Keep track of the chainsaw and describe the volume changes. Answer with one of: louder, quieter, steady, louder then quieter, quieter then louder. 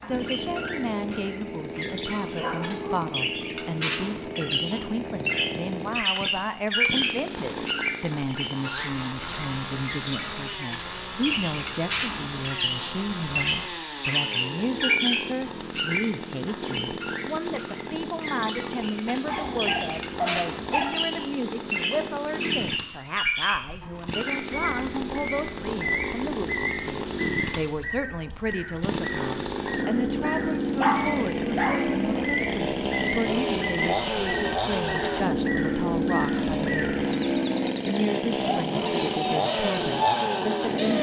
louder.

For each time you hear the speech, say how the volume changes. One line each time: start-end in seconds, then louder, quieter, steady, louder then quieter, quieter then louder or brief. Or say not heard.
0.0-40.9 steady.